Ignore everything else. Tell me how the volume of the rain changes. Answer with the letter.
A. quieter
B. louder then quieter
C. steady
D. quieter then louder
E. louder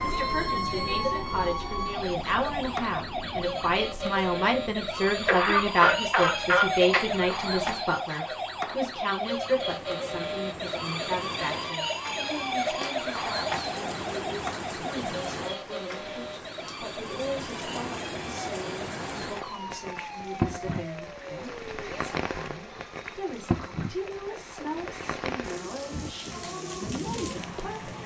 E.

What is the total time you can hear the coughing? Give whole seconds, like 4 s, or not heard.
2 s.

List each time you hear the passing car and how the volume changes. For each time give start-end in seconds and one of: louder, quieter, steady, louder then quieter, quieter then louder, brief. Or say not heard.
not heard.